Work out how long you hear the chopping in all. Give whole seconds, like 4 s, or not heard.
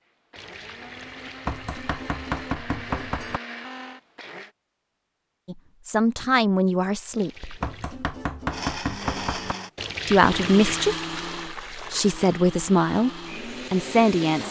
4 s.